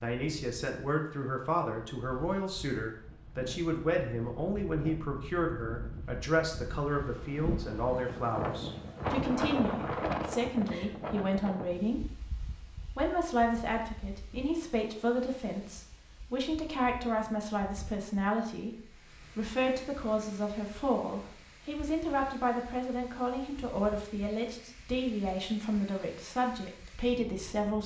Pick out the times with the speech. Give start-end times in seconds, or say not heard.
0.0-12.2, 12.9-27.8.